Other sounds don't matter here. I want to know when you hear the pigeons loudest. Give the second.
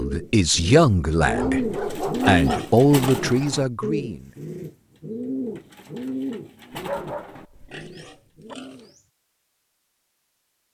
2 s.